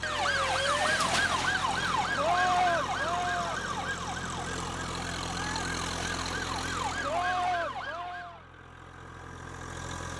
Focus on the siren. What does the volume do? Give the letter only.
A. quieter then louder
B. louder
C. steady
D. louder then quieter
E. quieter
A.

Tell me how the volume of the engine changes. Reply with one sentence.
The loudness of the engine goes down.